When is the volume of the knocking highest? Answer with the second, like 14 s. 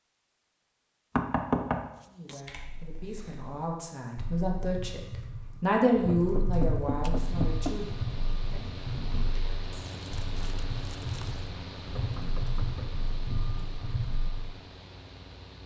2 s.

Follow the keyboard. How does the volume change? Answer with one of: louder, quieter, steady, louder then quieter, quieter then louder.
louder.